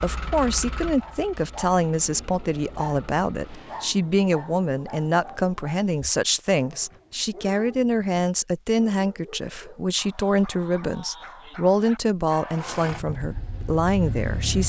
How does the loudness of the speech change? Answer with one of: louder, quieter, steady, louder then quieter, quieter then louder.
steady.